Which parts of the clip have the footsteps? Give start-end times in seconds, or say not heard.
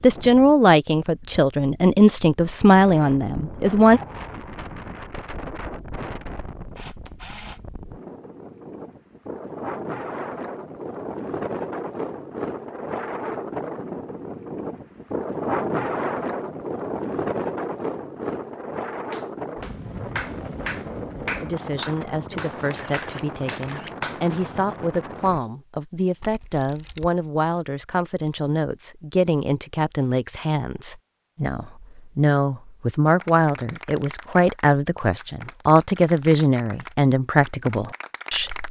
not heard.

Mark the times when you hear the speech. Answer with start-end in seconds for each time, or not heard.
0.0-4.0, 21.4-38.6.